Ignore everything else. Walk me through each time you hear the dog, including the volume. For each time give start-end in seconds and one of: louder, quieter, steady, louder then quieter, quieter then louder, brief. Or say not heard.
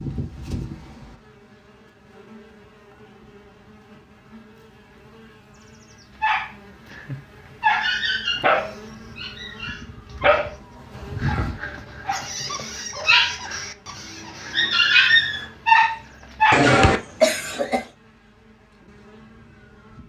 6.2-16.7 quieter then louder.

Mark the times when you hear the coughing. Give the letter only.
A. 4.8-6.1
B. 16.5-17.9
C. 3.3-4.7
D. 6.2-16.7
B.